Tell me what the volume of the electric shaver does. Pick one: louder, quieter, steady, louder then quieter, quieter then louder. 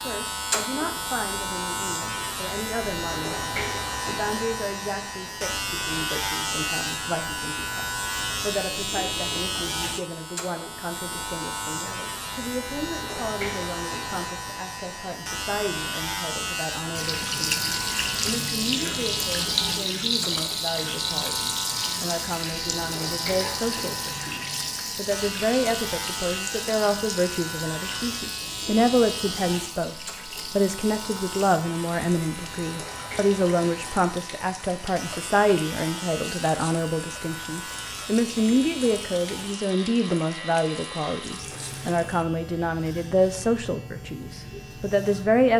quieter.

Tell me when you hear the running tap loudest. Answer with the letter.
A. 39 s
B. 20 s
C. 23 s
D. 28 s
B.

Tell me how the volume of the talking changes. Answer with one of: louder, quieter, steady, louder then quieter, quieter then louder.
louder.